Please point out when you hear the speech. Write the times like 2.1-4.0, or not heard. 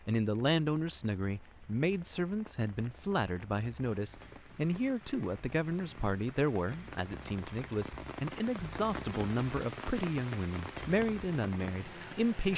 0.1-12.5.